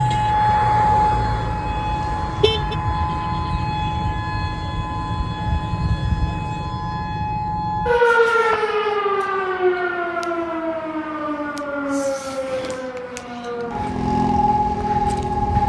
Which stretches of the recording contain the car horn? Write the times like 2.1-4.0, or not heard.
1.8-2.8.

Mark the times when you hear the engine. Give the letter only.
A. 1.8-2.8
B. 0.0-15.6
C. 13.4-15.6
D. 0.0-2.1
C.